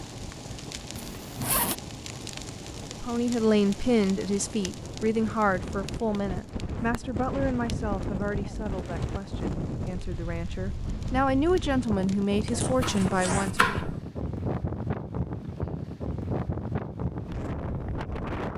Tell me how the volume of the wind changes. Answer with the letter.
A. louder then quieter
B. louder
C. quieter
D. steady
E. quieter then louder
B.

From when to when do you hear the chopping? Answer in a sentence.
You can hear the chopping from 12.6 to 13.9 s.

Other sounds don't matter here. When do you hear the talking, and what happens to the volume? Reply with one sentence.
You can hear the talking from 3.0 to 13.8 s, getting quieter then louder.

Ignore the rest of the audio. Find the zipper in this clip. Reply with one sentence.
You can hear the zipper from 0.9 to 1.8 s and from 12.4 to 13.5 s.